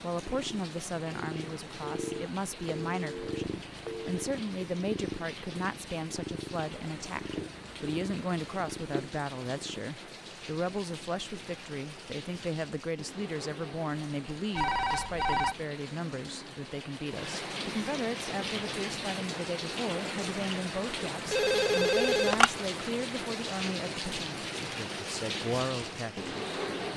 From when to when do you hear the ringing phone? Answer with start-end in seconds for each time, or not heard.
1.8-4.2, 14.6-15.6, 21.3-22.5.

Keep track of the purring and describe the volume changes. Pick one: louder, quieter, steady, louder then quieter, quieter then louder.
steady.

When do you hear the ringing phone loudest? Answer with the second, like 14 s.
22 s.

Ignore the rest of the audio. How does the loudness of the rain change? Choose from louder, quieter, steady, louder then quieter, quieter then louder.
louder.